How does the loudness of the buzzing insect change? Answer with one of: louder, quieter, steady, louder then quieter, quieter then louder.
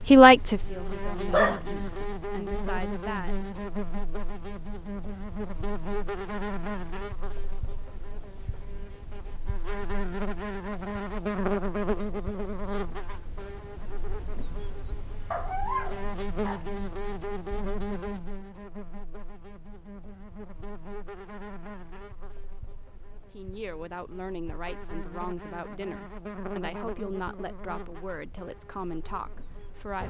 quieter.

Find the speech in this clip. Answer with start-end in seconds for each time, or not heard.
0.0-3.5, 23.3-30.0.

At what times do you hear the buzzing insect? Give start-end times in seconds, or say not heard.
0.0-30.0.